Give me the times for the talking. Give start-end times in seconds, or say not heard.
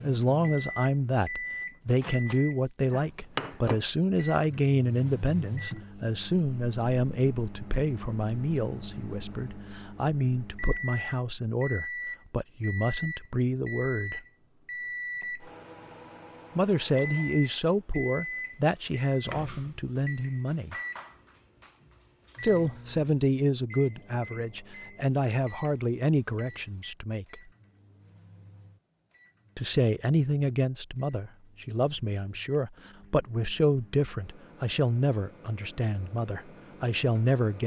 0.0-14.2, 16.6-20.8, 22.4-27.4, 29.6-37.6.